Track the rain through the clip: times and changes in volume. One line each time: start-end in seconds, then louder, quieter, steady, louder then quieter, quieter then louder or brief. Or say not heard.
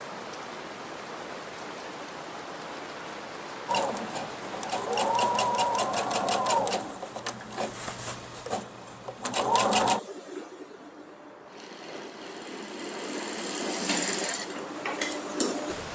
0.0-15.9 quieter then louder.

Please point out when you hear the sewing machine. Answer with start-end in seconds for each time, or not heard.
3.6-15.9.